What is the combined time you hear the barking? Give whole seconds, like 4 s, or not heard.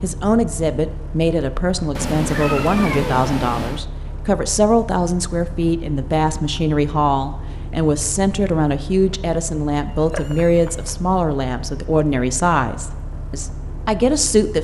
not heard.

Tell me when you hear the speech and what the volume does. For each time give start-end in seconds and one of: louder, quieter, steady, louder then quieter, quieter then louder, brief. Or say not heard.
0.0-14.5 steady.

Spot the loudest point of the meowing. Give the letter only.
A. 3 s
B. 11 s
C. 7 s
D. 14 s
A.